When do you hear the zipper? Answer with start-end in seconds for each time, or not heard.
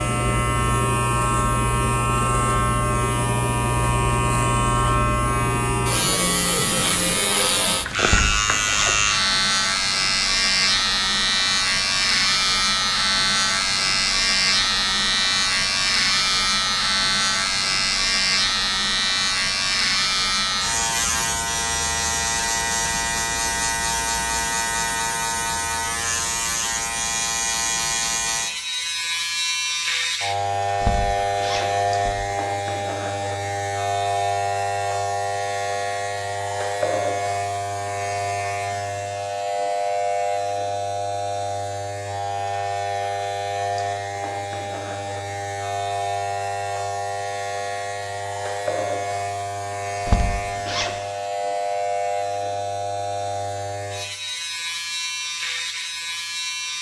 8.1-8.9, 30.8-32.1, 50.0-50.9.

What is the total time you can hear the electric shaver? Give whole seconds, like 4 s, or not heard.
57 s.